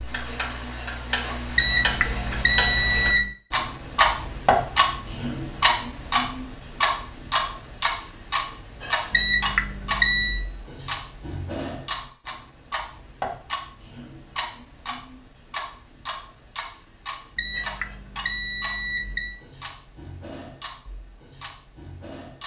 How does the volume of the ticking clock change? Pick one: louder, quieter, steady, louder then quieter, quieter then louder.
quieter.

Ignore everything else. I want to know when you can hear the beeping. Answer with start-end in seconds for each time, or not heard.
1.6-3.3, 9.1-10.4, 17.4-19.4.